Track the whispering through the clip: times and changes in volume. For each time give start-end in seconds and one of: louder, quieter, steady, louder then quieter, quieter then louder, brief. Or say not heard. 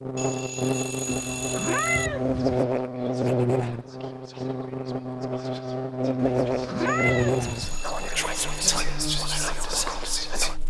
2.3-10.6 louder.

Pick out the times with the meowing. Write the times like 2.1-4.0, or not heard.
1.1-2.6, 6.2-7.8.